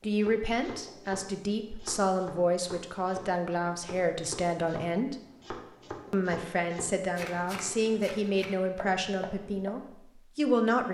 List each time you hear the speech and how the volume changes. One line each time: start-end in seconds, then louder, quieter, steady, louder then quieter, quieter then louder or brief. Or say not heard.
0.0-5.2 steady
6.1-10.8 quieter.